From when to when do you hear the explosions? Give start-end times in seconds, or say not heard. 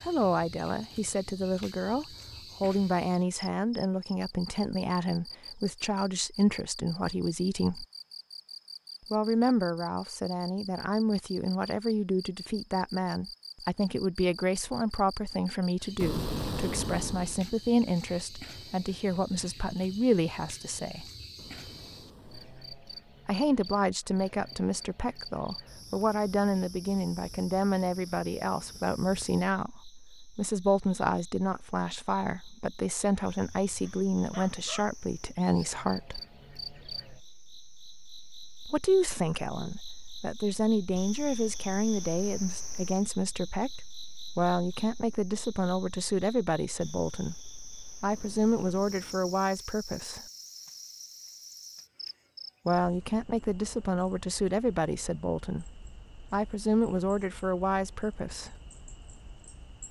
16.0-17.4, 21.4-22.8, 48.1-49.3.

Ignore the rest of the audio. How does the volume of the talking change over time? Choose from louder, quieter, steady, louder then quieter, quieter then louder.
steady.